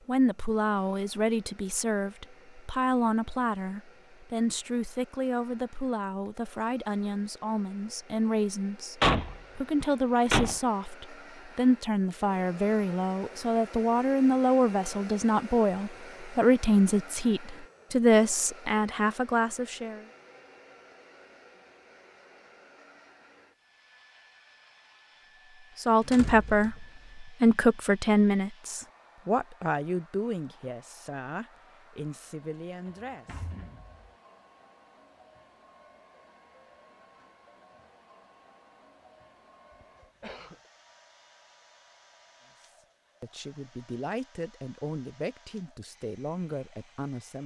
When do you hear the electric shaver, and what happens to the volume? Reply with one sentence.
You can't hear the electric shaver here.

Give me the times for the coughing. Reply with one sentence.
The coughing can be heard from 39.8 to 40.7 s.